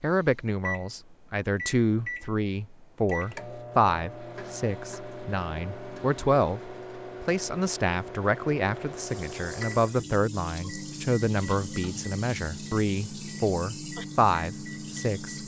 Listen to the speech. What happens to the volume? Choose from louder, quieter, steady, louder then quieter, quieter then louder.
steady.